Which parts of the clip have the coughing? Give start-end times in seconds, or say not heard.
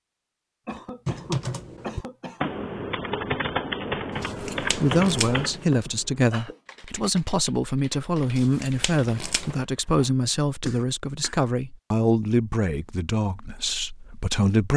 0.7-2.5, 5.7-6.6, 10.6-11.4.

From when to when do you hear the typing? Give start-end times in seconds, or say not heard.
1.1-10.2.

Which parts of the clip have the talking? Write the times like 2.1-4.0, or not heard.
4.6-14.7.